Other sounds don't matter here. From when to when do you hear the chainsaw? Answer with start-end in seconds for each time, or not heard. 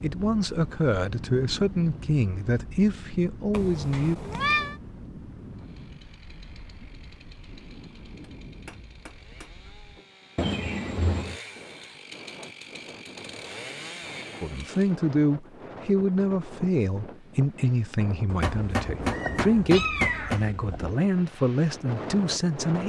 5.5-15.0.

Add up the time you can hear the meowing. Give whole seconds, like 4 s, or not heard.
5 s.